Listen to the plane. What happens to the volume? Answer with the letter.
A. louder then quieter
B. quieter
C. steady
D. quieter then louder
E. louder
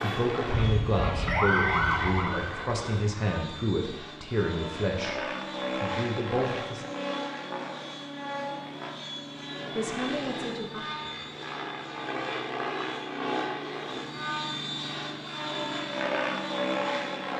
E.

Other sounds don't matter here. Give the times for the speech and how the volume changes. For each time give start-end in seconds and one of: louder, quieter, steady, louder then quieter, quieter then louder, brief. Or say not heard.
0.0-6.8 steady
9.8-10.8 brief.